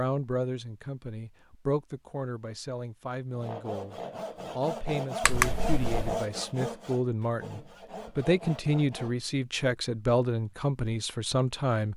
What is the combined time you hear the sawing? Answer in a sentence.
The sawing can be heard for 6 seconds in total.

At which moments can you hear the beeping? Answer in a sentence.
The beeping can be heard from 5.2 to 6.2 s.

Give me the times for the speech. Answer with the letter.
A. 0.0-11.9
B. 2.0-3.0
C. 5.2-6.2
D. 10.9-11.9
A.